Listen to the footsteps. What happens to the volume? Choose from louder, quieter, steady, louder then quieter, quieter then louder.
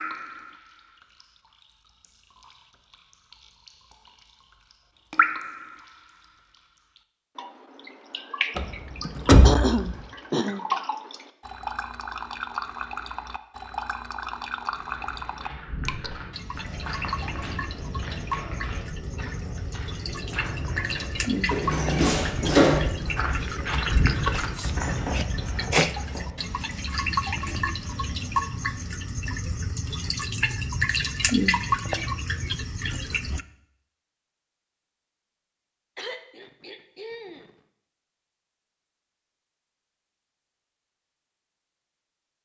louder.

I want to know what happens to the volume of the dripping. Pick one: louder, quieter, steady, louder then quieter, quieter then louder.
louder.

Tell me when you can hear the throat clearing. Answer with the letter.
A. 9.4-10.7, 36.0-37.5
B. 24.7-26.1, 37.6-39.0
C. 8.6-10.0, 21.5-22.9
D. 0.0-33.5
A.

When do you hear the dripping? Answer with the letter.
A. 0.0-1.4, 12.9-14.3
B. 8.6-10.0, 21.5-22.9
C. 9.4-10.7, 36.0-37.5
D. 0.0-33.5
D.